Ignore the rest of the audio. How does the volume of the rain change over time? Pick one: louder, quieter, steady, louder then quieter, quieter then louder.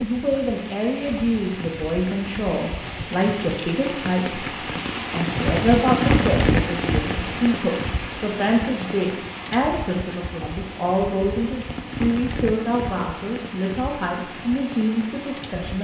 louder then quieter.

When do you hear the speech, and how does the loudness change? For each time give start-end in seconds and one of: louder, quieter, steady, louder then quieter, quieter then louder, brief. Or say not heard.
0.0-15.8 steady.